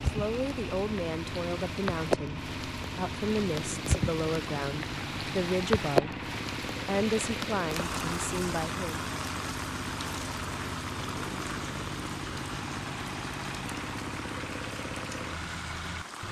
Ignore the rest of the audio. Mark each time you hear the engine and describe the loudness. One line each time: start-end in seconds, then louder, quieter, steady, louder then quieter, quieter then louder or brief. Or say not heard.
0.0-16.2 steady.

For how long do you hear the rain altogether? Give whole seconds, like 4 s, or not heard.
16 s.